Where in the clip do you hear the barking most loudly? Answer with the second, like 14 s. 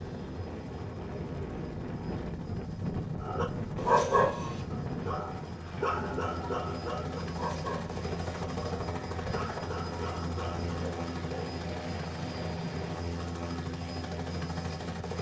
4 s.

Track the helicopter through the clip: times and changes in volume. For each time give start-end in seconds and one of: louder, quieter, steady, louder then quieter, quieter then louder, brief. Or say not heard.
0.0-15.1 louder.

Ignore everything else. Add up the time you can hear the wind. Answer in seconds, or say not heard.
11 s.